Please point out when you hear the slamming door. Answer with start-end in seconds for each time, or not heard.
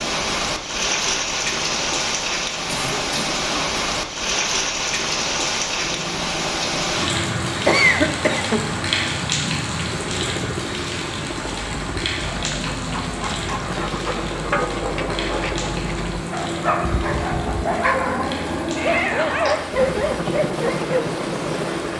not heard.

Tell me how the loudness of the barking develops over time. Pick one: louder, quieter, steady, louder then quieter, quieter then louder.
louder.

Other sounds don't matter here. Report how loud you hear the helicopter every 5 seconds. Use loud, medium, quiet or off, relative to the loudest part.
off, medium, medium, loud, loud.